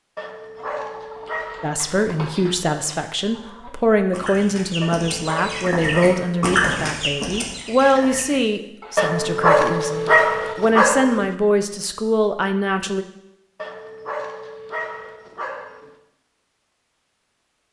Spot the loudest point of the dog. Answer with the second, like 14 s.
10 s.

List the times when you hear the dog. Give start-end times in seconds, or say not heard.
0.1-1.8, 4.8-6.8, 8.9-11.3, 13.6-15.9.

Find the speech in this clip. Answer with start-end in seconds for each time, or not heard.
1.6-13.1.